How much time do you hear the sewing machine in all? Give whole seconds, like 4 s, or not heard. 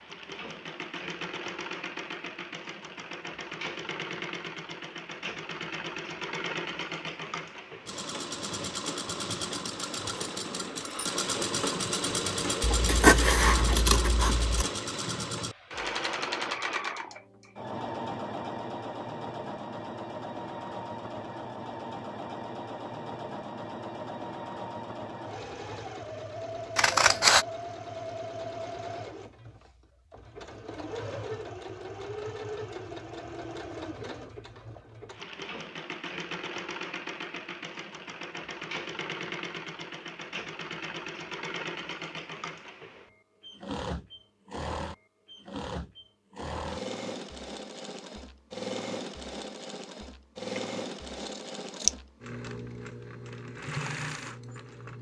55 s.